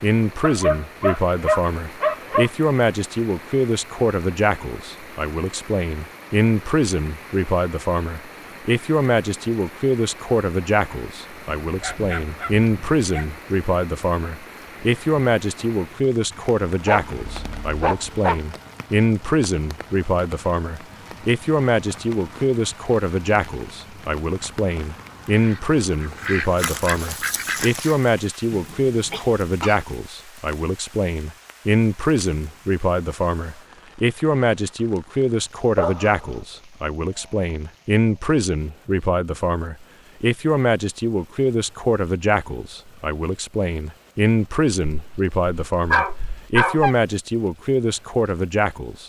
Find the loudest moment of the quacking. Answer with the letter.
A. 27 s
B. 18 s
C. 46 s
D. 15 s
A.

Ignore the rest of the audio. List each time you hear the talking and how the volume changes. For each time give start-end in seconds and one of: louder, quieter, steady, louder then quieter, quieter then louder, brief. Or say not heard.
0.0-49.0 steady.